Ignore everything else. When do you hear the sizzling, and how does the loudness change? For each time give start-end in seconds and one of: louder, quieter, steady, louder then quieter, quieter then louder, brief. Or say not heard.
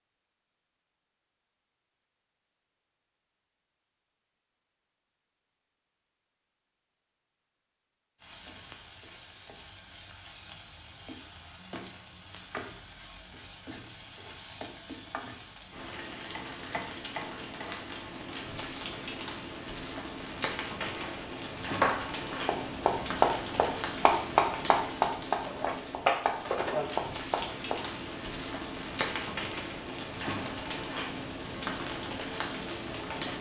8.2-33.3 louder.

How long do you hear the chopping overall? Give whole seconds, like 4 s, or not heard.
7 s.